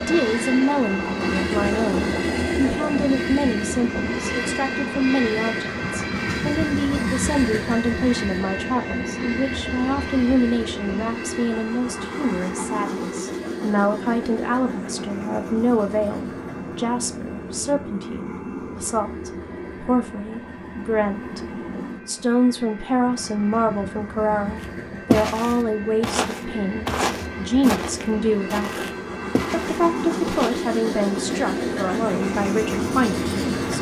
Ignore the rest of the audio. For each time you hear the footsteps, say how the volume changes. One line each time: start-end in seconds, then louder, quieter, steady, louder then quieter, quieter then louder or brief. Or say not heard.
24.6-30.6 quieter.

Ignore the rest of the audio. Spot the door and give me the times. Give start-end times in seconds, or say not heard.
not heard.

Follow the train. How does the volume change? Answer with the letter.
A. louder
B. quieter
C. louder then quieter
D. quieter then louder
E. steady
D.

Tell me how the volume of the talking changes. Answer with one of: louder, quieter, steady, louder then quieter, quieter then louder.
steady.